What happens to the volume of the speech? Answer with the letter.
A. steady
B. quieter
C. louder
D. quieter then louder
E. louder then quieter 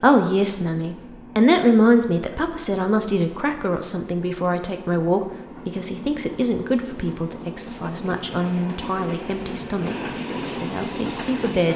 B.